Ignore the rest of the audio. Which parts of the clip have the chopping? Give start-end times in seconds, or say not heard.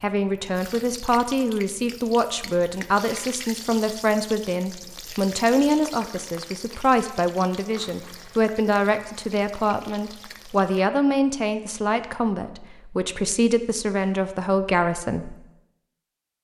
not heard.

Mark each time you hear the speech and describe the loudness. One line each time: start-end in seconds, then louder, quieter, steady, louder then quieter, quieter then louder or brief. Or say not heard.
0.0-15.3 steady.